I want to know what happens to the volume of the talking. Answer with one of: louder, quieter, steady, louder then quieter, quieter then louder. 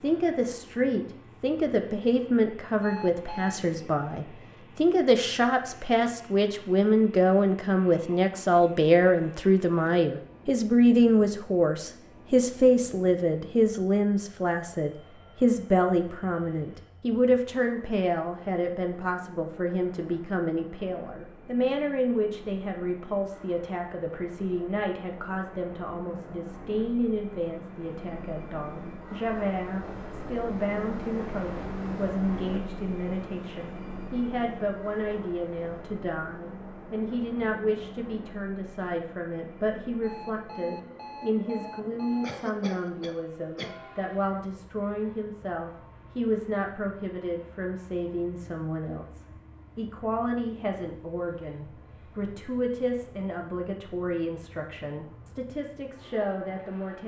quieter.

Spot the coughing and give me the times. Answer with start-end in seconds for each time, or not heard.
42.2-43.8.